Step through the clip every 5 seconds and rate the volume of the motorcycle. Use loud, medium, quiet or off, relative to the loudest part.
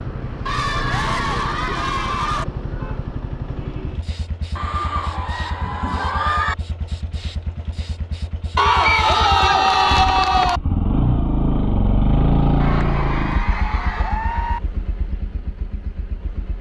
medium, quiet, loud, quiet.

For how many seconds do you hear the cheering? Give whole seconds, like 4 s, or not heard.
8 s.